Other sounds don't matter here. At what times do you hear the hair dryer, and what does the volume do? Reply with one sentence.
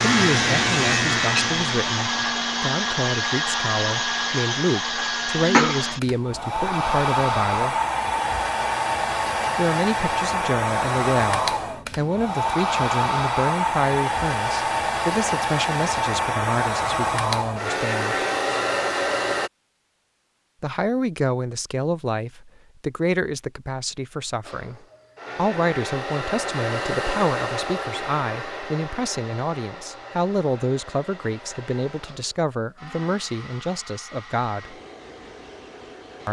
The hair dryer can be heard from 0.0 to 19.5 s, at a steady volume; and from 24.4 to 36.2 s, getting quieter.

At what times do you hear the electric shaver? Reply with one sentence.
You can hear the electric shaver from 0.0 to 2.3 s.